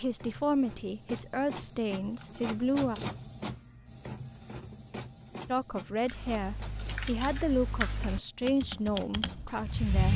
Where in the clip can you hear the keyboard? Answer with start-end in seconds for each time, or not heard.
6.0-10.1.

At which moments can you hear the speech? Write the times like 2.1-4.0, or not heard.
0.0-3.0, 5.5-10.1.